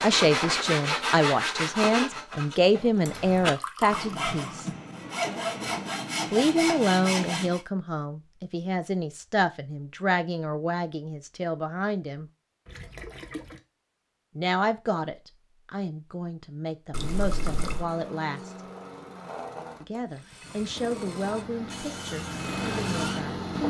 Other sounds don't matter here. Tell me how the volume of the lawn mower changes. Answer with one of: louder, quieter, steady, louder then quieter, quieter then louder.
louder.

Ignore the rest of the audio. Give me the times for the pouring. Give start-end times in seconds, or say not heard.
3.5-4.6, 12.7-13.6, 16.9-17.9.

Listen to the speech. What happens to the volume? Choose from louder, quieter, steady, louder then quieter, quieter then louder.
quieter.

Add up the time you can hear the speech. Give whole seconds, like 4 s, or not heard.
19 s.